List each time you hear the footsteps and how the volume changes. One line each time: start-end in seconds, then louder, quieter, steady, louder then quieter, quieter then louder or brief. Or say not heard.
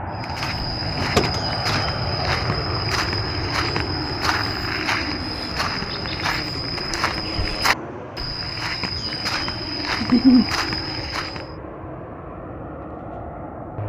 0.1-11.6 steady.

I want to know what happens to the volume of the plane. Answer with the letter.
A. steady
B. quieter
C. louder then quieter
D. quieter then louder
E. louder
B.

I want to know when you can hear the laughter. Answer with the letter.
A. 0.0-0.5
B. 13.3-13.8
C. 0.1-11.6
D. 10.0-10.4
D.